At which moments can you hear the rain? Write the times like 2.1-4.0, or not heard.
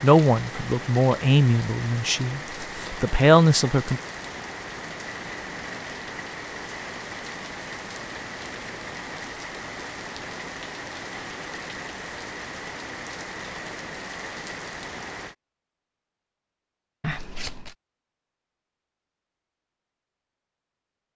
0.0-15.3.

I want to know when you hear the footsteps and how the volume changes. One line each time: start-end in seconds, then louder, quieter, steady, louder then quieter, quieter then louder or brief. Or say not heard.
not heard.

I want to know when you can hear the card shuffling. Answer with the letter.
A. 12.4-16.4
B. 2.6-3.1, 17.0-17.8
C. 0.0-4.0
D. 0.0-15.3
B.